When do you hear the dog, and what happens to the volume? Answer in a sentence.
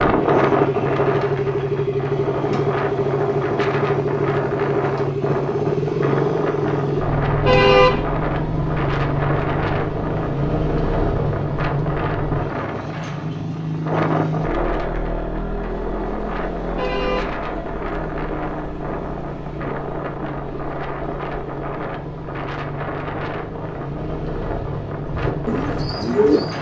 The dog can't be heard in this clip.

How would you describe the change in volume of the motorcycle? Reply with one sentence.
The loudness of the motorcycle goes down.